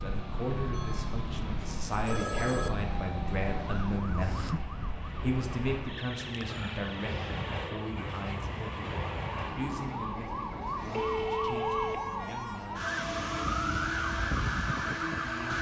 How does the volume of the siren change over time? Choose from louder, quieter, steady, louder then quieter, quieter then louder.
quieter then louder.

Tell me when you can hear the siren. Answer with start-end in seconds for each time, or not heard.
0.0-15.5.